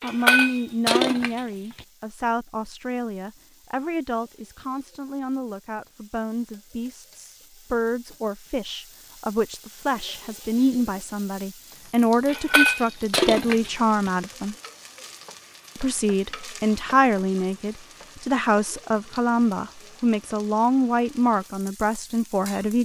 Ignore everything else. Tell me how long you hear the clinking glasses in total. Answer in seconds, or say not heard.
3 s.